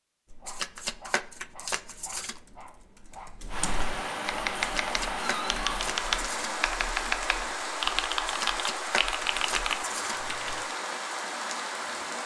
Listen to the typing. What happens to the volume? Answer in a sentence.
The volume of the typing goes up.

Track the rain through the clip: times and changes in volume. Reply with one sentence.
The rain can be heard from 3.5 to 12.2 s, at a steady volume.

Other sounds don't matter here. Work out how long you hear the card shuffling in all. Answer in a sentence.
You can hear the card shuffling for 6 seconds altogether.